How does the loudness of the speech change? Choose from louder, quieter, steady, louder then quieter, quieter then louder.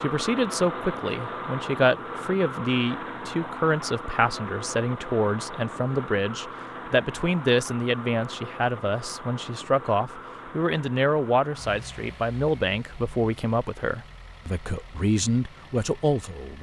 steady.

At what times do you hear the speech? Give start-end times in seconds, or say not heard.
0.0-16.5.